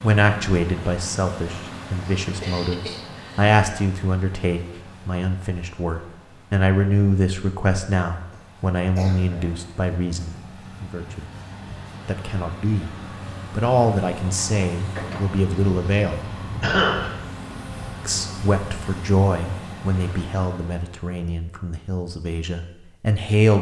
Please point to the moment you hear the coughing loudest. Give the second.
17 s.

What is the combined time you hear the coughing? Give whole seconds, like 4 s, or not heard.
3 s.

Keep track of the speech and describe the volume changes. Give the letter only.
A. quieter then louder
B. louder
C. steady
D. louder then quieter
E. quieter
C.